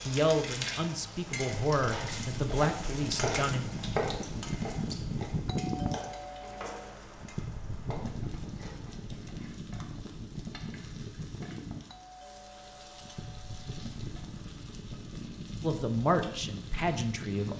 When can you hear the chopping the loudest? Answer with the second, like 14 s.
4 s.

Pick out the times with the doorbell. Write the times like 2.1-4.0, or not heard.
5.5-7.0, 11.8-13.8.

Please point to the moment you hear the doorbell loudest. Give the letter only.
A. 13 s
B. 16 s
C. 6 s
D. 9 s
C.